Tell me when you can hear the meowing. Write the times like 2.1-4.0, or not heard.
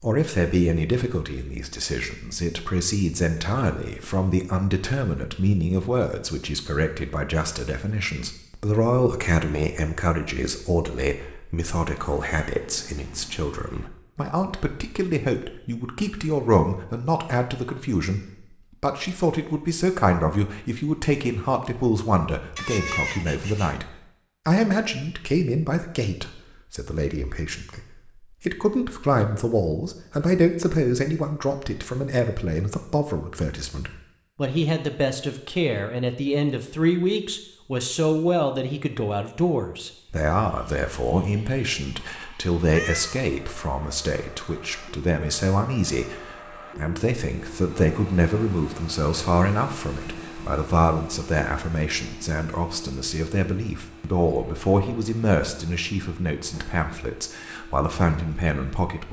11.8-13.9, 22.6-23.8, 42.6-43.2.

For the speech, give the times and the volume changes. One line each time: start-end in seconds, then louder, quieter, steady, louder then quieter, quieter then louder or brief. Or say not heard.
0.0-59.0 steady.